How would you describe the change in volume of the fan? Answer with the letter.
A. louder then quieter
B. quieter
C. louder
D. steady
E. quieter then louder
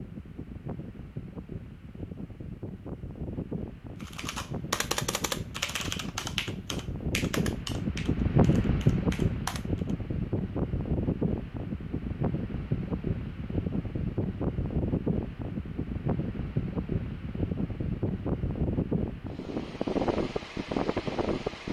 C.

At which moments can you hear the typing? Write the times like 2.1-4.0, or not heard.
4.0-9.9.